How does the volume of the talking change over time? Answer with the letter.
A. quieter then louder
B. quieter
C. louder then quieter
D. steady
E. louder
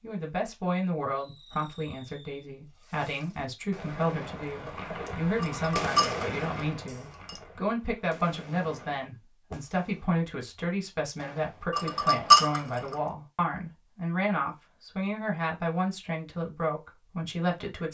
D.